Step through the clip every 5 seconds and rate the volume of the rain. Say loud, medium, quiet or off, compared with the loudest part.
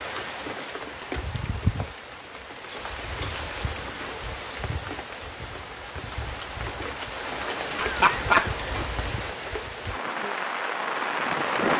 medium, medium, loud.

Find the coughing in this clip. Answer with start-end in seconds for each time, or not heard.
7.8-8.8.